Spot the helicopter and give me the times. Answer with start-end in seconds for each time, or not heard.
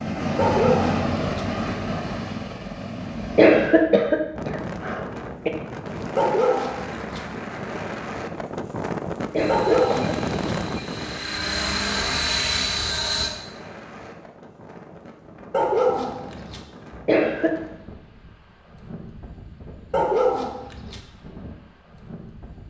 0.0-3.8, 9.3-13.3.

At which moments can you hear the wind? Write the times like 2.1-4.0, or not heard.
4.3-22.6.